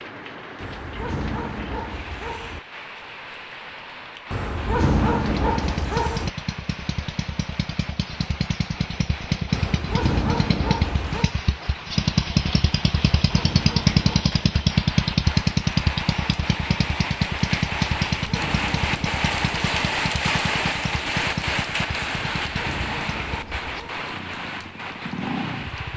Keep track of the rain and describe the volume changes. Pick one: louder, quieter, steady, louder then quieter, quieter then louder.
louder.